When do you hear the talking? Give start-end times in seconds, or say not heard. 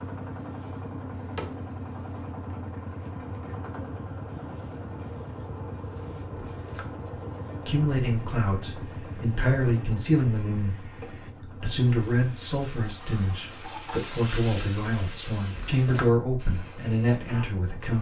7.7-17.9.